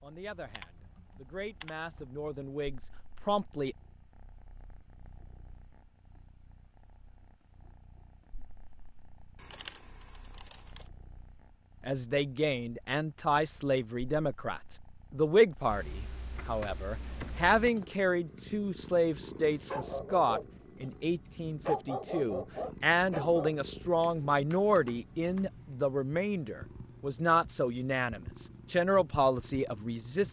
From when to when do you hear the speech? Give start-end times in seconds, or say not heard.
0.0-3.8, 11.8-30.2.